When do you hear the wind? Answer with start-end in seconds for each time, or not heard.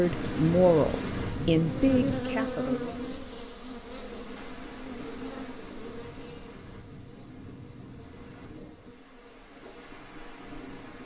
0.0-11.0.